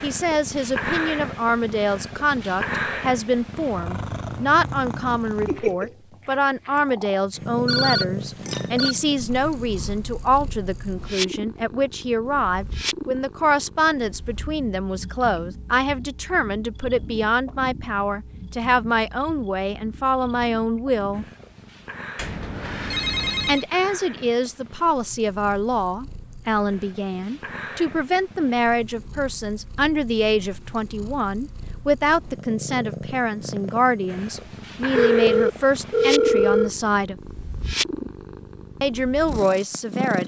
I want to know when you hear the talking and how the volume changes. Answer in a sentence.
You can hear the talking from 0.0 to 21.2 s, at a steady volume; from 23.4 to 37.1 s, at a steady volume; and briefly from 38.8 to 40.2 s.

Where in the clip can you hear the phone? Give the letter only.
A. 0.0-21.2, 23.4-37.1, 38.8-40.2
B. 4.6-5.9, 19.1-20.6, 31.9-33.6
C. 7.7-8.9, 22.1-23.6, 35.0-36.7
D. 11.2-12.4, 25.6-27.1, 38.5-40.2
C.